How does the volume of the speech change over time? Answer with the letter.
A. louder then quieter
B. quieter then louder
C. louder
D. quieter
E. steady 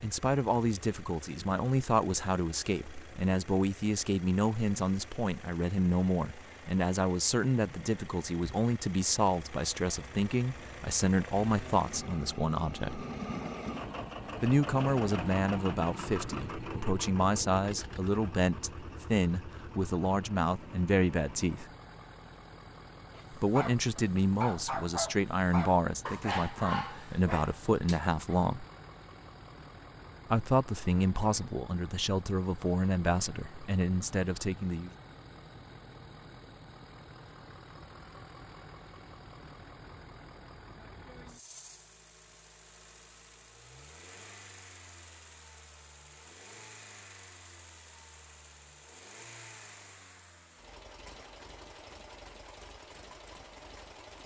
E.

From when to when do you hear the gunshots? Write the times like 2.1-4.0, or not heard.
not heard.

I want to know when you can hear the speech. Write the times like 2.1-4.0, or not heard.
0.0-13.1, 14.4-21.6, 23.4-28.6, 30.3-34.9.